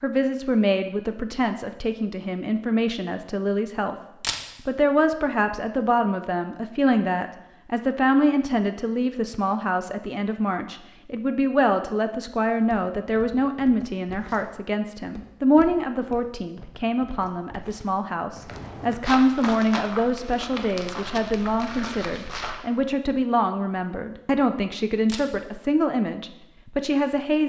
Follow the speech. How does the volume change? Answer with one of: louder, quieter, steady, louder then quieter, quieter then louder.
steady.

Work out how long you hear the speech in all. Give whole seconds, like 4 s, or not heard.
27 s.